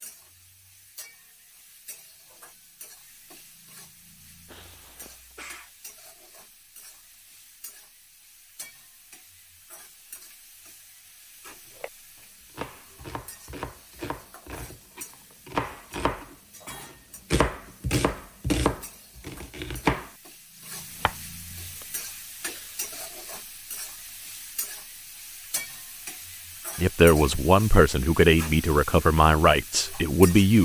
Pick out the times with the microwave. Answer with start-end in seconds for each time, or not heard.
not heard.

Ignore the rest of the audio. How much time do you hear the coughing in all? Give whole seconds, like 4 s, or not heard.
2 s.